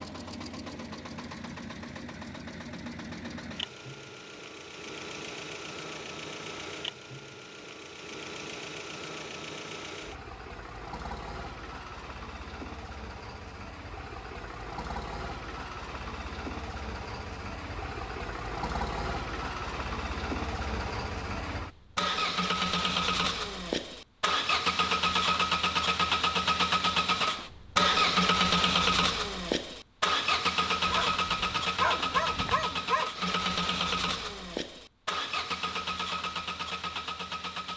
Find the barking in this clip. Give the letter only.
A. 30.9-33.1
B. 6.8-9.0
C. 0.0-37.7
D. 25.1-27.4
A.